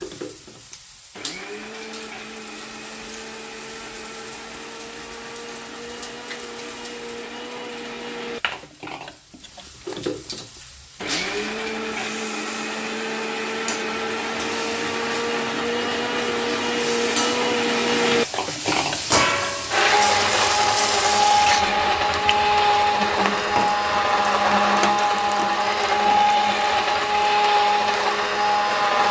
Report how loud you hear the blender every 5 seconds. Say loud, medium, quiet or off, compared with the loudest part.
quiet, quiet, medium, loud, loud, loud.